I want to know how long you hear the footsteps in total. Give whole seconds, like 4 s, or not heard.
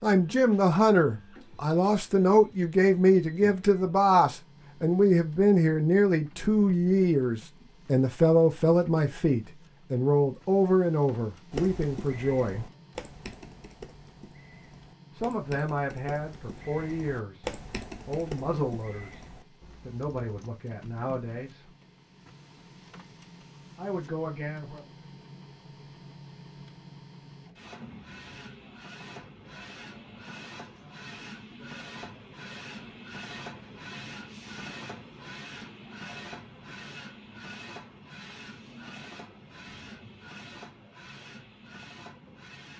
not heard.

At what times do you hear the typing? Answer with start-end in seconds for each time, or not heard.
11.5-20.5.